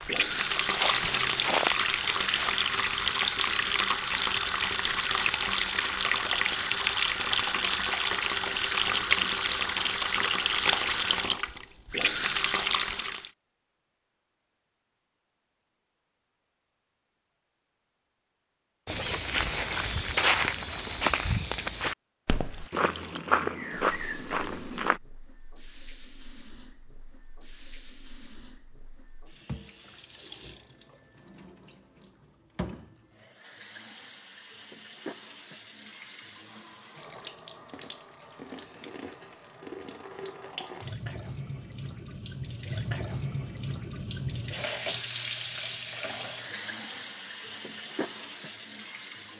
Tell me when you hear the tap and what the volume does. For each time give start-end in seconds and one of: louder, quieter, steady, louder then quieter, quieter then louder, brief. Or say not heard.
0.0-13.3 steady
22.5-49.3 louder.